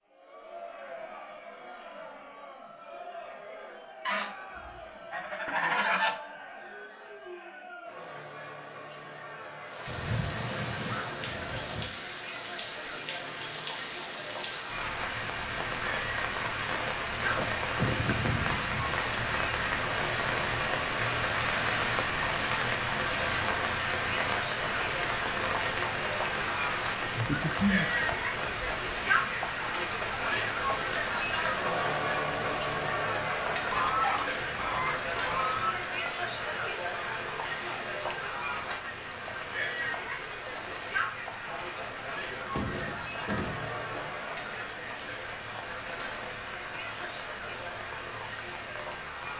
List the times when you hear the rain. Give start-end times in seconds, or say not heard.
9.6-49.3.